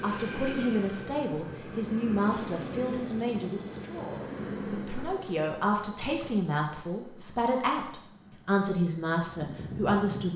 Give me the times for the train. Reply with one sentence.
The train can be heard from 0.0 to 10.3 s.